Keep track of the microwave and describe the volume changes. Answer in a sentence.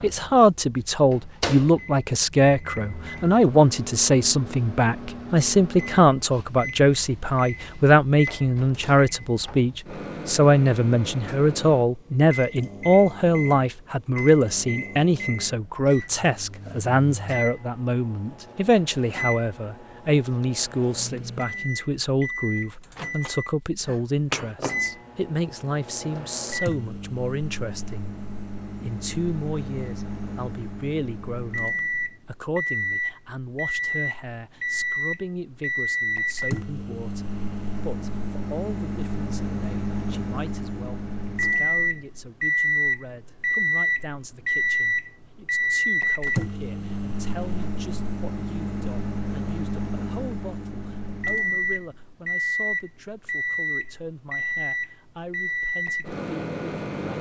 The loudness of the microwave goes up.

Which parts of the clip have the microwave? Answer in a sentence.
The microwave can be heard from 0.0 to 57.1 s.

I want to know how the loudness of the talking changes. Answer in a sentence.
The loudness of the talking goes down.